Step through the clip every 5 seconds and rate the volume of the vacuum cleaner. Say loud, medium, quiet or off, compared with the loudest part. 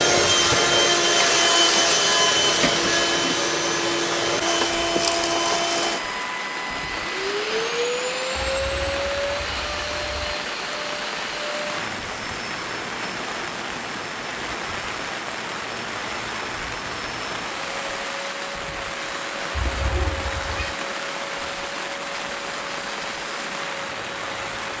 loud, medium, quiet, quiet, quiet.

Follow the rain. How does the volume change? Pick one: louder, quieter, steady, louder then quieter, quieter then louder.
steady.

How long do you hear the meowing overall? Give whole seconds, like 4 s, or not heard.
3 s.